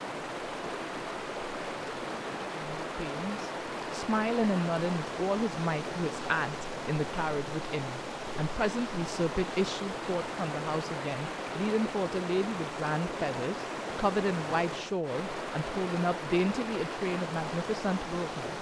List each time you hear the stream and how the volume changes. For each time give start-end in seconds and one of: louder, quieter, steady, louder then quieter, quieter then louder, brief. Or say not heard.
0.0-18.5 steady.